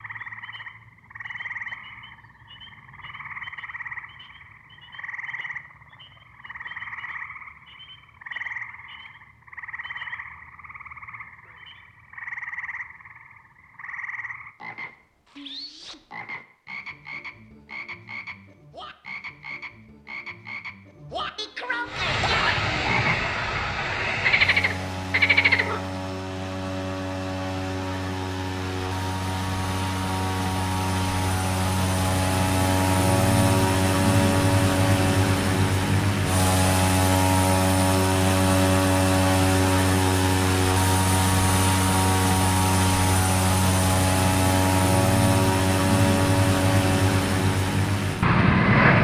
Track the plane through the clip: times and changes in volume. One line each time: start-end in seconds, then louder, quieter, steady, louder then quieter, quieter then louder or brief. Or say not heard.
21.9-48.9 louder.